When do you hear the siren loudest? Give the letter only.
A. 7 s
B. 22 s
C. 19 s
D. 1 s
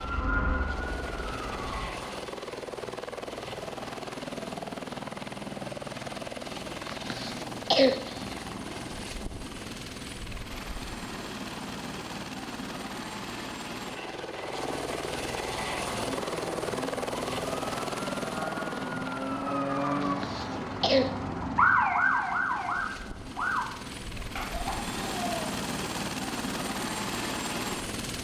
B.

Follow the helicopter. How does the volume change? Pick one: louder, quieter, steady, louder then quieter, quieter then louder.
steady.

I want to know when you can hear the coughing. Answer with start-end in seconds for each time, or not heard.
7.0-8.3, 20.0-21.1.